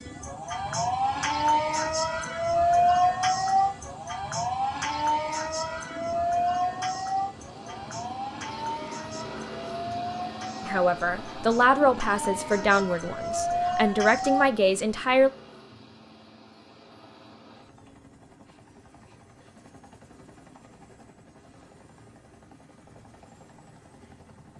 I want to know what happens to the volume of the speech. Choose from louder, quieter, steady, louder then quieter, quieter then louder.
steady.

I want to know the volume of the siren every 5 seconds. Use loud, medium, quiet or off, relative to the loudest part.
loud, medium, medium, off, off.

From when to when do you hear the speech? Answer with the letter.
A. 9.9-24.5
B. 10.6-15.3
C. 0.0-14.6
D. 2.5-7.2
B.